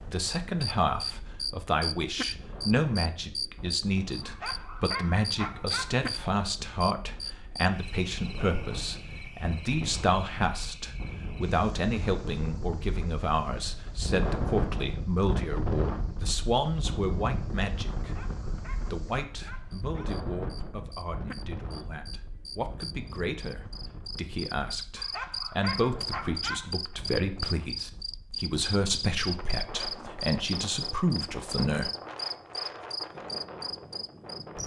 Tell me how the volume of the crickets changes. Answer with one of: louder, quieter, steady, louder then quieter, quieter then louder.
quieter then louder.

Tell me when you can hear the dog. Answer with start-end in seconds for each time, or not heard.
4.2-6.0, 17.9-20.1, 24.9-26.9.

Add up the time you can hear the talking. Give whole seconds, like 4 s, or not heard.
32 s.